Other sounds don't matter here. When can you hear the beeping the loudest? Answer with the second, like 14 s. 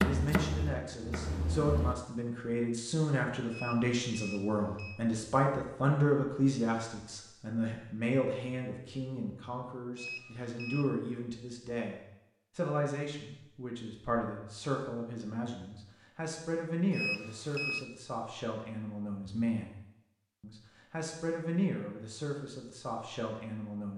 17 s.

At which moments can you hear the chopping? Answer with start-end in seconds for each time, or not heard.
0.0-1.9.